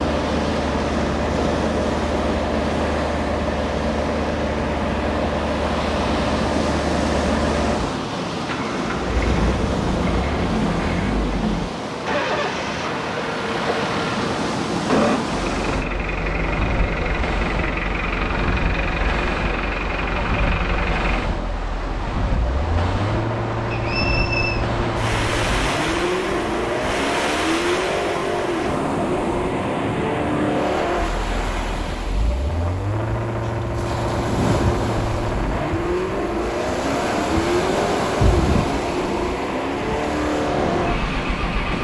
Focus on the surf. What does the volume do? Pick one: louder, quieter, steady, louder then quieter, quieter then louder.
steady.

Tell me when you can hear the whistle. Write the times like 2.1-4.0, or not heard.
23.7-24.6.